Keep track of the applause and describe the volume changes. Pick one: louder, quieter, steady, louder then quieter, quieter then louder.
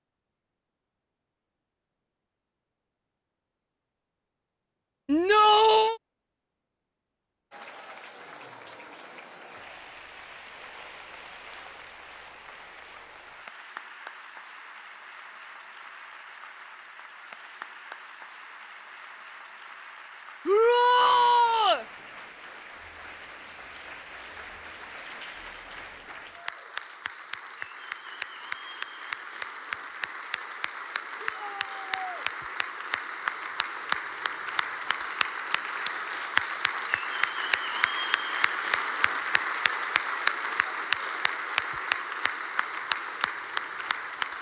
louder.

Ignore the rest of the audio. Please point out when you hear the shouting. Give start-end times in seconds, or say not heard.
5.0-6.0, 20.4-21.9, 31.2-32.2.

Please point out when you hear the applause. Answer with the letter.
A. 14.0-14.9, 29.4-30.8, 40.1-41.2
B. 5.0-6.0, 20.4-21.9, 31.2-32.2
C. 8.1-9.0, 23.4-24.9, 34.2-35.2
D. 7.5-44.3
D.